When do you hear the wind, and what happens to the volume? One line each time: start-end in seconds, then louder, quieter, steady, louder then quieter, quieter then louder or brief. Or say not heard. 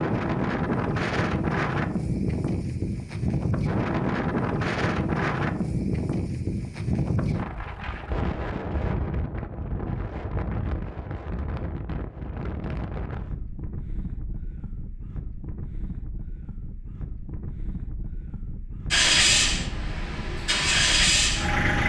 0.0-21.6 quieter.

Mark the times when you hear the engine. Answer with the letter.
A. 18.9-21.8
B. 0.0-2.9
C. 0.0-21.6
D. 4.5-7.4
A.